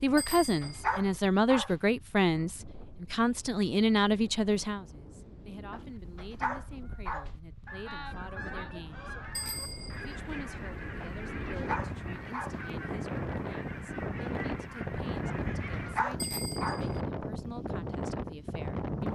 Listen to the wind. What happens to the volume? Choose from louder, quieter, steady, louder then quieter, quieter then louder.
louder.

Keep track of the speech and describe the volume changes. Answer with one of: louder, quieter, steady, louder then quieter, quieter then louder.
quieter.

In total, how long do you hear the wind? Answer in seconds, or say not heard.
19 s.